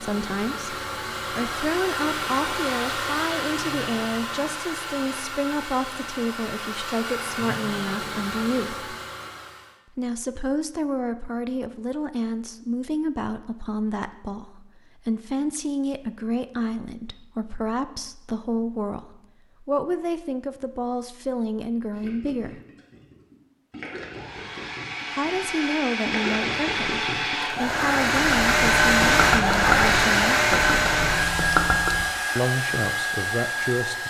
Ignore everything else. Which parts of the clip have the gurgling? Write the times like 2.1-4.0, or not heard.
21.9-32.0.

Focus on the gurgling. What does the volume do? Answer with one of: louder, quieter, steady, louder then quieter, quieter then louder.
louder.